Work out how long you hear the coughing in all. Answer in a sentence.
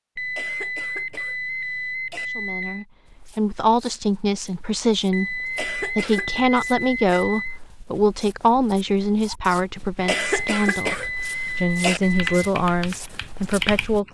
The coughing can be heard for 5 seconds in total.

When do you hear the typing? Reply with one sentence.
The typing can be heard from 12.2 to 14.0 s.